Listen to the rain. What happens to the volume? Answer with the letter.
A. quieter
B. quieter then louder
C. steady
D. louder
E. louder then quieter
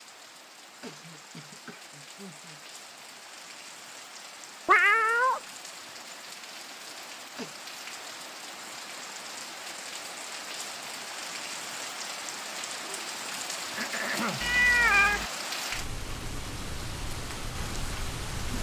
D.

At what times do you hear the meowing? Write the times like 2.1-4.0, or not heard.
4.7-5.4, 14.4-15.2.